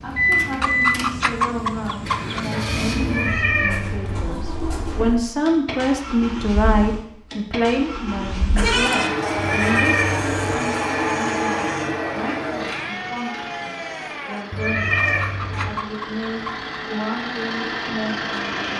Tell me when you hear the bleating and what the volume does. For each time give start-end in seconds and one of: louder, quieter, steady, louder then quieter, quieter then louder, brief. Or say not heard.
8.6-15.7 quieter.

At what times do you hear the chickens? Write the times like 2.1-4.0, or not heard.
0.6-2.5, 15.0-16.7.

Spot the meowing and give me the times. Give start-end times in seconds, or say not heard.
3.0-4.2, 9.3-10.6, 14.5-15.7.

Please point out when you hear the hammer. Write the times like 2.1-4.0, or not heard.
not heard.